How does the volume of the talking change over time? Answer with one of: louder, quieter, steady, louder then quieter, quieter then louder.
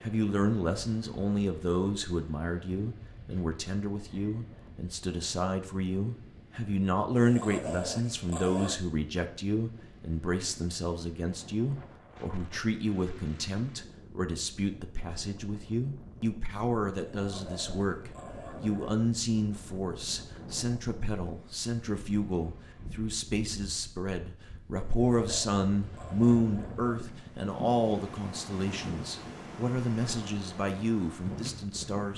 steady.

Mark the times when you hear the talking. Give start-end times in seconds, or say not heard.
0.0-32.1.